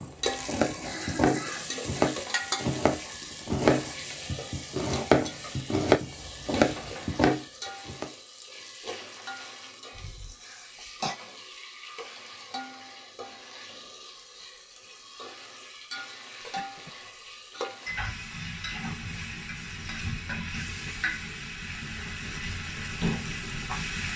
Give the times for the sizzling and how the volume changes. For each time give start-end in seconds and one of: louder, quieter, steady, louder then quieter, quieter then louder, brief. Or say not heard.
0.0-24.1 quieter then louder.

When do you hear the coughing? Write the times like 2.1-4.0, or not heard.
0.6-2.1, 9.9-11.2, 16.4-17.1.